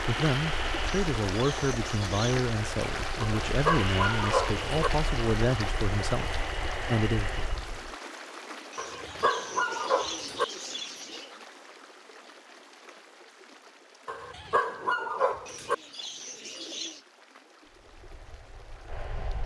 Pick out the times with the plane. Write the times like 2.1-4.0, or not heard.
0.0-8.0, 17.6-19.4.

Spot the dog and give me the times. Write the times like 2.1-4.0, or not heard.
3.2-4.9, 8.8-10.4, 14.1-15.8.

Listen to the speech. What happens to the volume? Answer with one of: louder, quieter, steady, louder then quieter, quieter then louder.
steady.